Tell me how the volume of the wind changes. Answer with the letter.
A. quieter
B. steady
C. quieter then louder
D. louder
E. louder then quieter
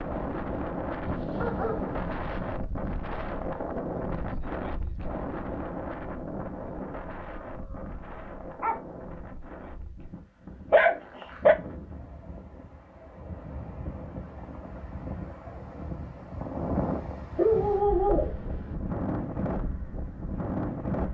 C.